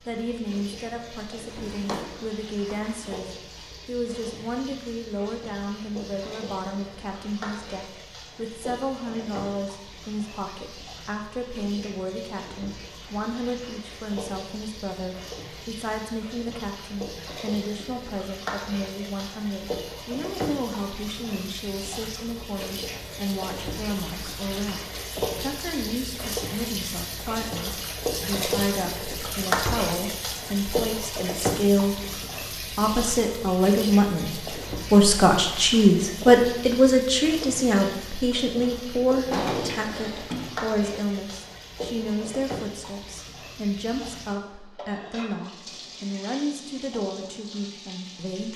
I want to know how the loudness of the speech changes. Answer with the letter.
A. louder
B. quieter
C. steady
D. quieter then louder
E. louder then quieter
E.